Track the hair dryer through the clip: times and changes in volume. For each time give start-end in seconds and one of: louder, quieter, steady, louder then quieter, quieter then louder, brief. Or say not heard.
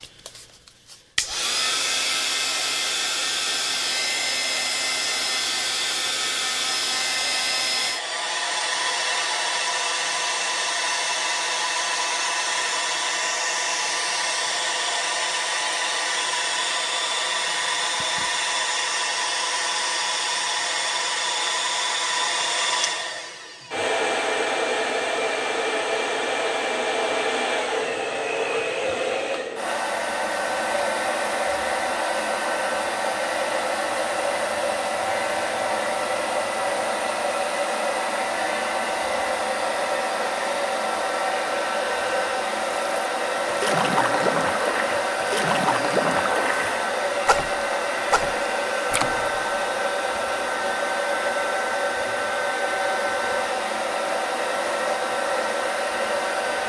0.0-56.6 steady.